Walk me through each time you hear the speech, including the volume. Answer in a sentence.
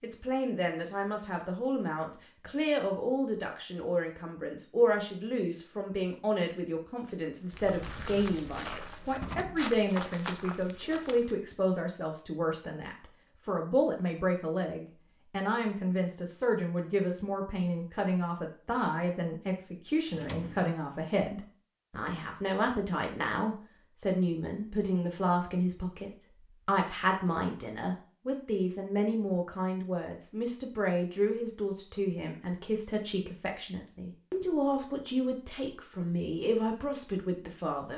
The speech can be heard from 0.0 to 37.9 s, at a steady volume.